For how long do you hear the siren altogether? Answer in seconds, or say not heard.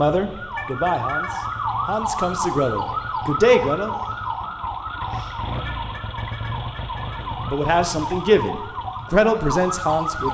10 s.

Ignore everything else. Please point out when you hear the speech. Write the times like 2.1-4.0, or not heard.
0.0-3.9, 7.5-10.3.